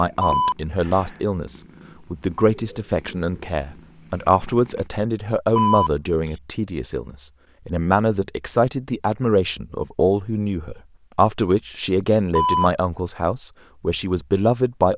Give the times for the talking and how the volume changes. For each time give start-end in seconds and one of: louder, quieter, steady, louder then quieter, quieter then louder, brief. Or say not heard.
0.0-14.9 steady.